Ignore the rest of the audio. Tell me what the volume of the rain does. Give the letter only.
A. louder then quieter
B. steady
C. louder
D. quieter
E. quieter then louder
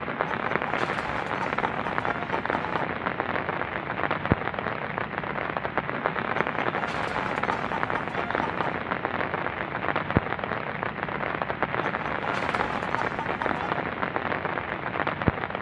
B.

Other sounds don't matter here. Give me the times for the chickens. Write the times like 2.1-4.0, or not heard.
0.2-2.9, 6.5-8.8, 11.8-13.9.